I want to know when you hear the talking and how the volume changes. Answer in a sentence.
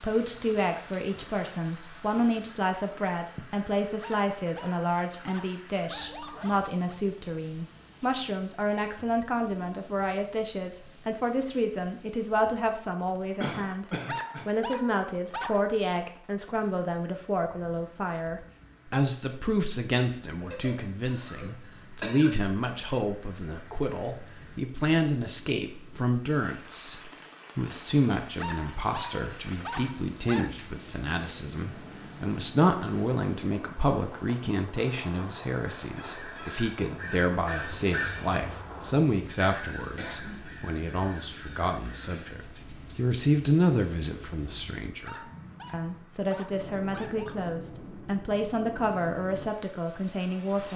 You can hear the talking from 0.0 to 13.8 s, at a steady volume; and from 14.4 to 50.7 s, at a steady volume.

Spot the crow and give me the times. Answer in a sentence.
The crow can be heard from 35.6 to 42.5 s.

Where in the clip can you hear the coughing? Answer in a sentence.
The coughing can be heard from 13.4 to 14.5 s, from 20.4 to 22.3 s and from 40.0 to 40.5 s.